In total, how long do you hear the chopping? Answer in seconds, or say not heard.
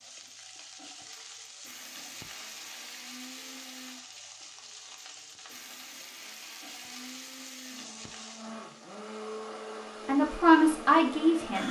not heard.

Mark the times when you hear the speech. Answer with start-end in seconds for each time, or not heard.
10.1-11.6.